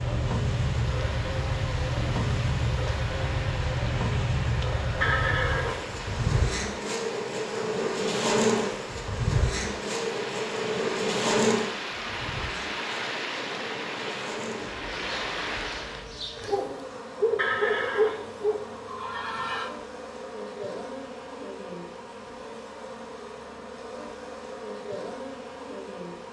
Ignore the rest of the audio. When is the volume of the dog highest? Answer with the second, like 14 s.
18 s.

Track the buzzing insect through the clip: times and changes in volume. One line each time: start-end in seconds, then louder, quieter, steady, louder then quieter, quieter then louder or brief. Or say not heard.
0.0-26.2 quieter.